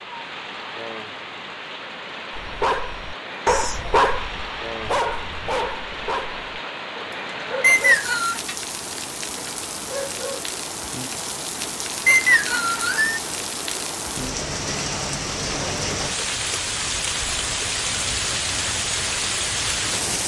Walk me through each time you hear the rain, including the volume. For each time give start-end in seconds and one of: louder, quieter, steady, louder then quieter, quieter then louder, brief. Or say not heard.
0.0-20.2 louder.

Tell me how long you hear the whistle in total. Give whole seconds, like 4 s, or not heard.
2 s.